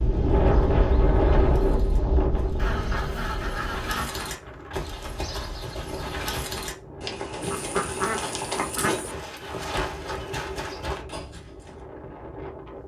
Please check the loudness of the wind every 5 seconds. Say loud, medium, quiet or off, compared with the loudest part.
loud, quiet, quiet.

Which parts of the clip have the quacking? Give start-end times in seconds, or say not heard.
2.5-4.3, 7.4-9.2.